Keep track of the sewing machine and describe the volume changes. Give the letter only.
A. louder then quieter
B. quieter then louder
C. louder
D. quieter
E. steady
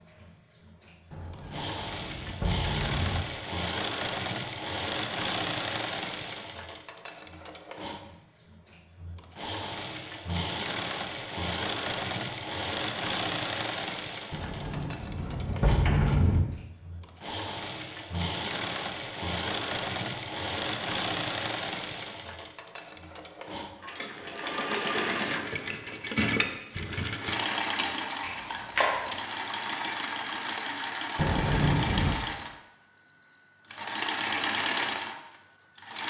E.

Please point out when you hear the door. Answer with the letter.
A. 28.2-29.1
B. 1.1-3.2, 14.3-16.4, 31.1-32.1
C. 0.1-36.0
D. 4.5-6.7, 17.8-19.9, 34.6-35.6
B.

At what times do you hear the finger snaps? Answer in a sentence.
The finger snaps can be heard from 28.2 to 29.1 s.